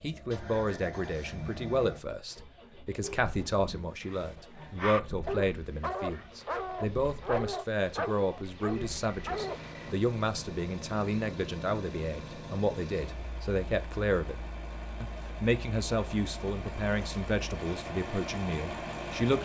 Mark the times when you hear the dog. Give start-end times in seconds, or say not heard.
3.0-9.9.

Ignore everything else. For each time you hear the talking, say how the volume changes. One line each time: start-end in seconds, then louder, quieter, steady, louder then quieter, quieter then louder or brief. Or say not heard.
0.0-19.4 steady.